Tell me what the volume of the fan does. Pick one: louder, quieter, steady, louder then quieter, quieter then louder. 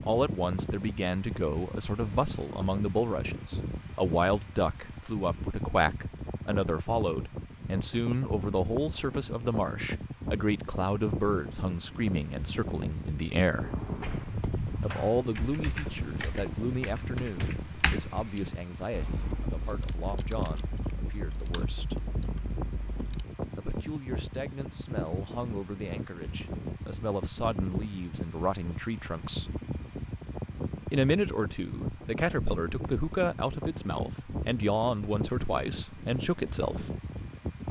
steady.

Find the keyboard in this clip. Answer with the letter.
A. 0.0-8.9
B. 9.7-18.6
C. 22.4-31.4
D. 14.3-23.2
D.